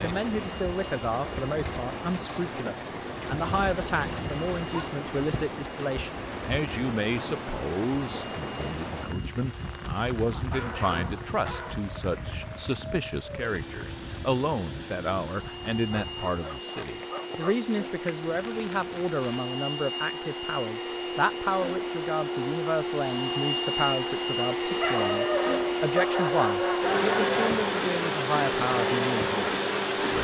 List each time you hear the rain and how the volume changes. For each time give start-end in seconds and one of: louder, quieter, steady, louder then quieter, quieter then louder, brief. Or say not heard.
0.0-19.4 quieter.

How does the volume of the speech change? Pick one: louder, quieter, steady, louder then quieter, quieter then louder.
steady.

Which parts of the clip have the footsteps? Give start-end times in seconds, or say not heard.
not heard.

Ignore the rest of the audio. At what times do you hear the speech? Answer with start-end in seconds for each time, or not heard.
0.0-30.1.